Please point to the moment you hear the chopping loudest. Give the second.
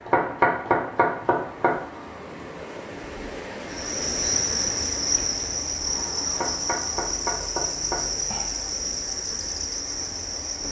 1 s.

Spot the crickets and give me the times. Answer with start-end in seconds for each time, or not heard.
3.7-10.6.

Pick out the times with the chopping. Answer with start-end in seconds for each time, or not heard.
0.1-1.8, 6.3-8.1.